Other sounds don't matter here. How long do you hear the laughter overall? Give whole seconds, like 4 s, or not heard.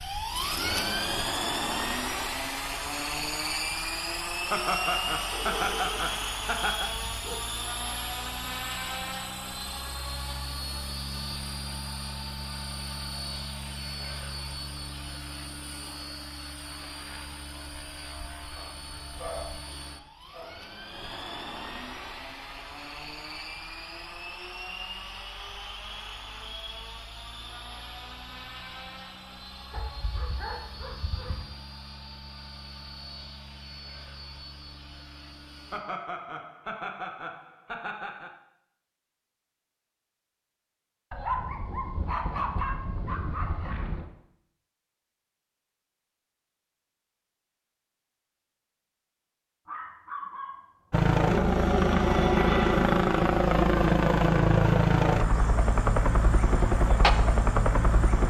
5 s.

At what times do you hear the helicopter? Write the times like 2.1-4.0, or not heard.
0.0-35.8, 50.9-58.2.